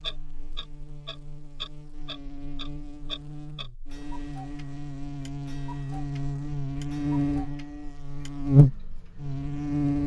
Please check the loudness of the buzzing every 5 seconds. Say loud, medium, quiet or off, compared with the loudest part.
quiet, loud.